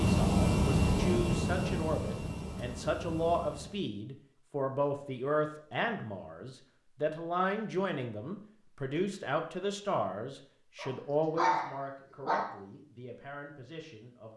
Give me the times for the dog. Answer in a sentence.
The dog can be heard from 10.8 to 12.6 s.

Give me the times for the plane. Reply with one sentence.
You can hear the plane from 0.0 to 3.9 s.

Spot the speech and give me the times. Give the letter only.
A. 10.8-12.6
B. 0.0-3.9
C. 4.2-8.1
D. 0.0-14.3
D.